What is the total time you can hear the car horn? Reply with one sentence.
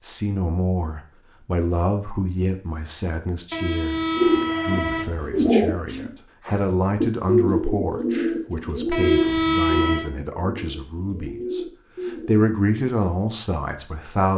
You can hear the car horn for 3 seconds altogether.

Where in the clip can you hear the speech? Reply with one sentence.
You can hear the speech from 0.0 to 4.0 s and from 4.6 to 14.3 s.